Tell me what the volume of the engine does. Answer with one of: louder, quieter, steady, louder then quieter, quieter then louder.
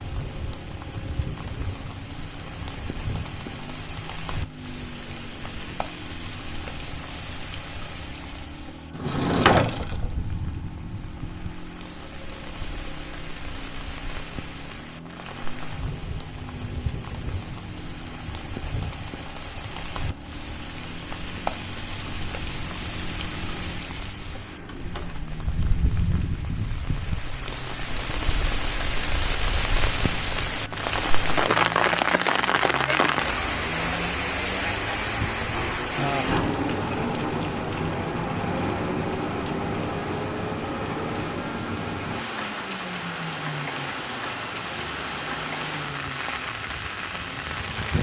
louder.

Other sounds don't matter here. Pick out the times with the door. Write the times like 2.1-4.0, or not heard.
8.9-10.1, 24.8-25.2, 35.5-36.5.